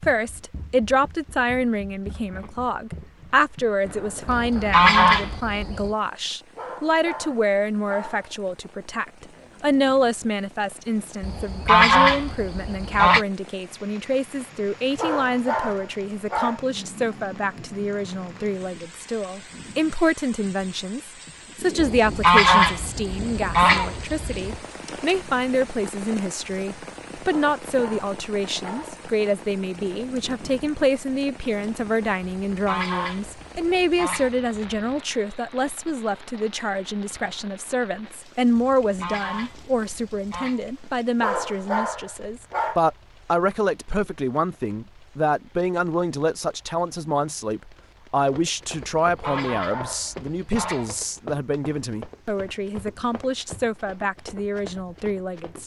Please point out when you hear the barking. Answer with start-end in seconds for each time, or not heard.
6.5-8.3, 14.9-16.6, 27.3-29.1, 41.2-42.8, 49.2-51.0.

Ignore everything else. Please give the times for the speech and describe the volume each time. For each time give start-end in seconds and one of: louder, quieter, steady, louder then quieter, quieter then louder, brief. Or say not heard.
0.0-55.6 steady.